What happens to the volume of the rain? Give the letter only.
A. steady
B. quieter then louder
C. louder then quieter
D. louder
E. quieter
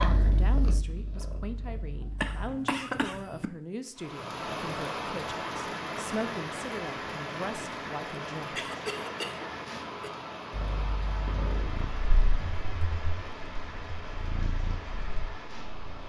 E.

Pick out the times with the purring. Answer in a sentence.
The purring can be heard from 0.0 to 2.4 s and from 10.5 to 16.0 s.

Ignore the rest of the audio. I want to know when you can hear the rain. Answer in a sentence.
The rain can be heard from 4.0 to 16.0 s.